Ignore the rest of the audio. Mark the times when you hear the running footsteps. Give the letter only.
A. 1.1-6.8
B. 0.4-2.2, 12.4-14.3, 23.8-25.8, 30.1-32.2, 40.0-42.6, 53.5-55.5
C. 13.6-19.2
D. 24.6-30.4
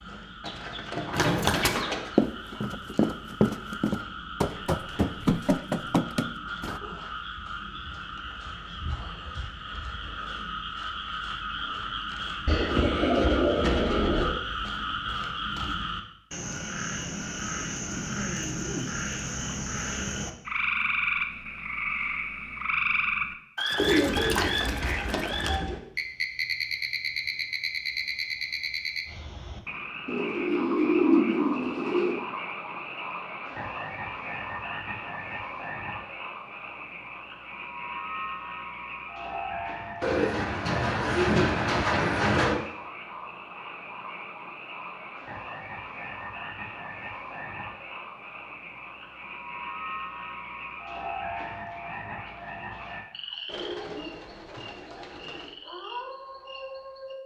A.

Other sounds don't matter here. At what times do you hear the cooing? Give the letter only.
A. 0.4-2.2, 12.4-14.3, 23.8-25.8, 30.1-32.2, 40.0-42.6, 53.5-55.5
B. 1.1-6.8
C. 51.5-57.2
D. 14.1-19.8
A.